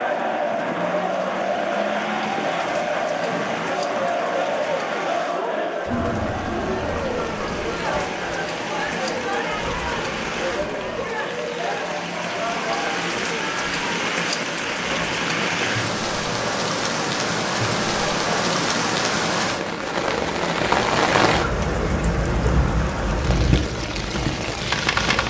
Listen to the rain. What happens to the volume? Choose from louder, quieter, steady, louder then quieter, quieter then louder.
louder.